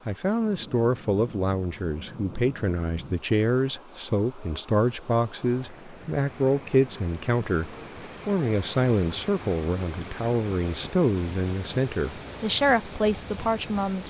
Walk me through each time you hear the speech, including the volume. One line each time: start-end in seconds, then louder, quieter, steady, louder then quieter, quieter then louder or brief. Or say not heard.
0.1-14.0 steady.